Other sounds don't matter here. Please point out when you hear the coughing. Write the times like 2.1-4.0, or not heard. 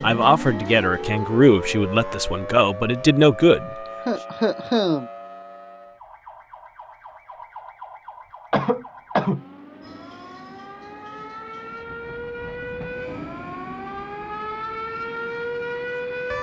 4.0-5.1, 8.5-9.4.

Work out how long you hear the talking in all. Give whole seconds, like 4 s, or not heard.
4 s.